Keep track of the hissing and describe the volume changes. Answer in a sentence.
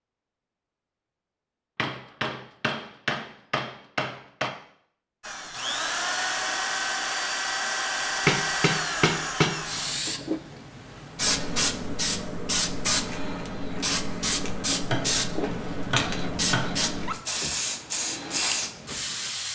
The volume of the hissing stays about the same.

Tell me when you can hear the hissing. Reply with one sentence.
The hissing can be heard from 9.6 to 19.5 s.